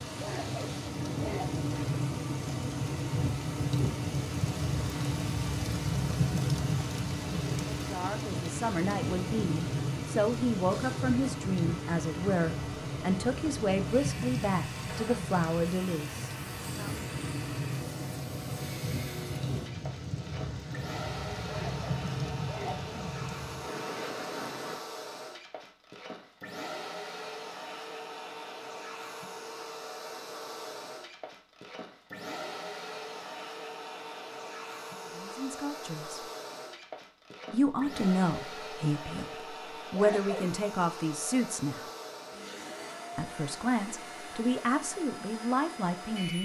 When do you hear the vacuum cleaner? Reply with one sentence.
The vacuum cleaner can be heard from 0.0 to 46.3 s.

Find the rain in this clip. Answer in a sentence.
You can hear the rain from 0.0 to 24.8 s.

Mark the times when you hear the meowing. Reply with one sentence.
The meowing can't be heard in this clip.